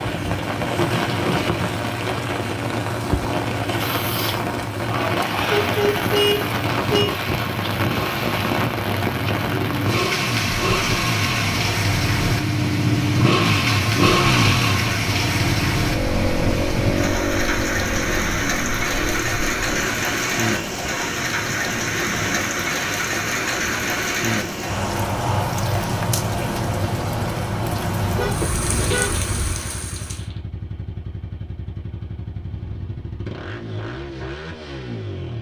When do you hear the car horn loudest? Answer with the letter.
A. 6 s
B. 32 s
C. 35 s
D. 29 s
A.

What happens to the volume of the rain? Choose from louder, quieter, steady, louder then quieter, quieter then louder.
steady.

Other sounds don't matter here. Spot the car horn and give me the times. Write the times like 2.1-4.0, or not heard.
5.6-7.1, 28.0-29.6.